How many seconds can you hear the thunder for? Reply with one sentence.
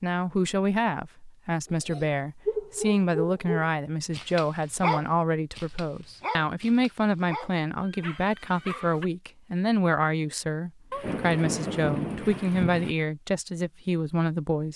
You can hear the thunder for 2 seconds altogether.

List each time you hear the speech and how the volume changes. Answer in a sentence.
The speech can be heard from 0.0 to 14.7 s, at a steady volume.